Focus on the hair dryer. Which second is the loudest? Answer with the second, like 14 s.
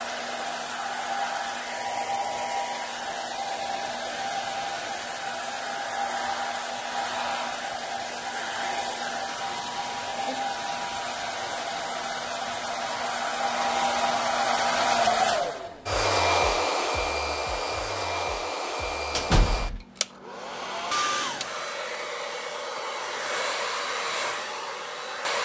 15 s.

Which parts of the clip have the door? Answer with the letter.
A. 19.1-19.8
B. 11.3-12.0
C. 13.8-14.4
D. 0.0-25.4
A.